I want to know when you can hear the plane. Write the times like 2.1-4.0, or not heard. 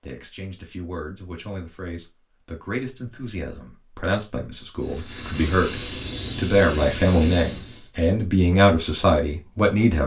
4.8-7.9.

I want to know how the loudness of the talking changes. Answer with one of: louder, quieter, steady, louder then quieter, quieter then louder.
louder.